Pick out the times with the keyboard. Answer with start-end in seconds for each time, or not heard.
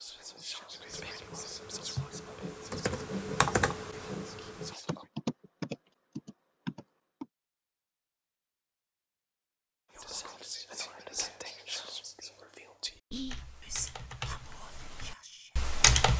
0.8-7.2, 13.2-16.1.